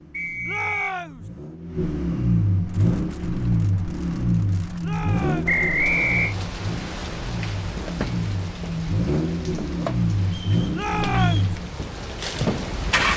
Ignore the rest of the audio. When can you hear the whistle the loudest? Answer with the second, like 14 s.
6 s.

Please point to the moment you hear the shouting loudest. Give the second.
11 s.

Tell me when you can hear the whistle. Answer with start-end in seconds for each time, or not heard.
0.1-0.9, 5.5-6.3, 10.3-11.5.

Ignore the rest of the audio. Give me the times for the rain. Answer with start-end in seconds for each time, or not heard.
2.6-13.1.